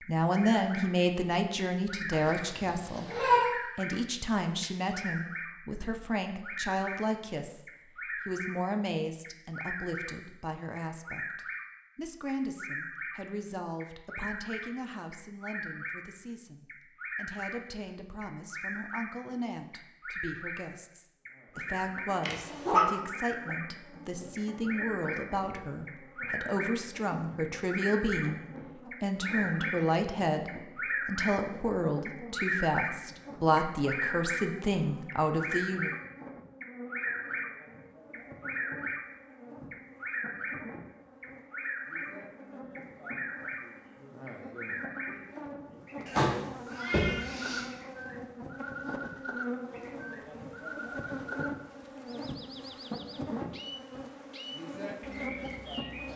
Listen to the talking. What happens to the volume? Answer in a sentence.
The loudness of the talking goes down, then up.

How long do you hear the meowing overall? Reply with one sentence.
The meowing can be heard for 4 seconds in total.